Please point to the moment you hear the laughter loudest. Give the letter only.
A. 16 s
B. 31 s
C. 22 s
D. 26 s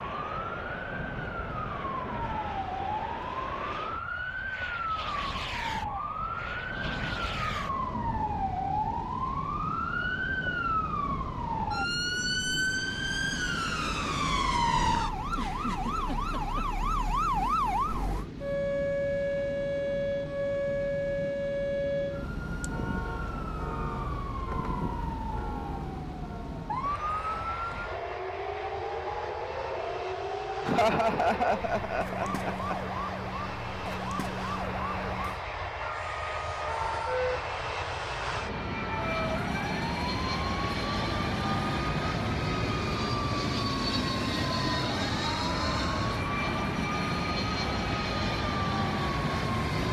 B.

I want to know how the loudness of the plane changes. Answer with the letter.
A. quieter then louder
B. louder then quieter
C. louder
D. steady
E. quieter
C.